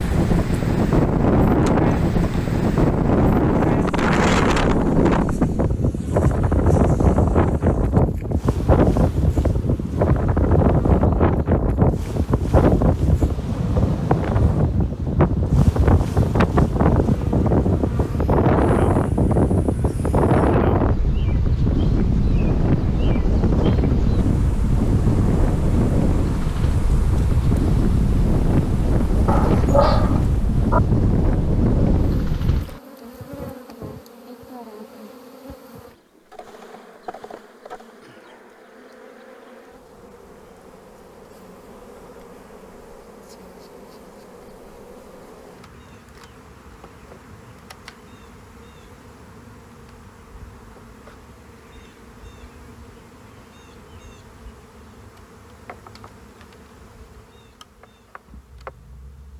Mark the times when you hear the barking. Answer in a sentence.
The barking can be heard from 29.2 to 30.8 s.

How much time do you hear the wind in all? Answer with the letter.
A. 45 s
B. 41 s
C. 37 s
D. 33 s
D.